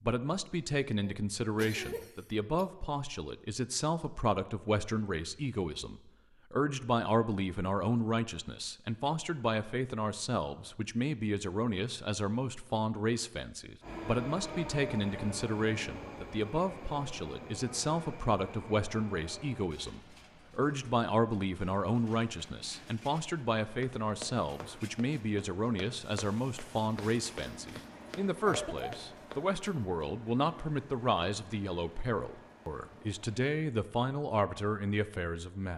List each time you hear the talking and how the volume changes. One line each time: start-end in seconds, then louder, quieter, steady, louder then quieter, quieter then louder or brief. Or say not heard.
0.0-35.7 steady.